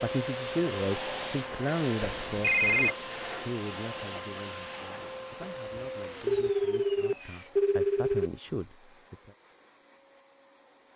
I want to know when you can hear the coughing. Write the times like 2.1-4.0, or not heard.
not heard.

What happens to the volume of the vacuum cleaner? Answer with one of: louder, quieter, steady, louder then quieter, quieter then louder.
quieter.